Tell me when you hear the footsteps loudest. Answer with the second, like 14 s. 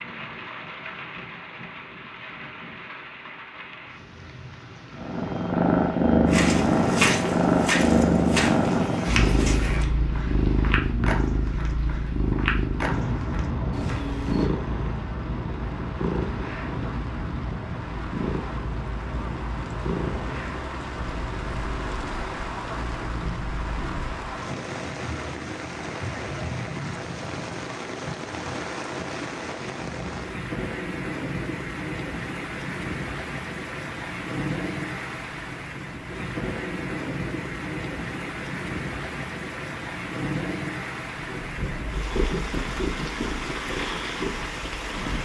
7 s.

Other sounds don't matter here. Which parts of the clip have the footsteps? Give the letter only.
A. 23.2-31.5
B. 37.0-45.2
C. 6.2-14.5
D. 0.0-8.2
C.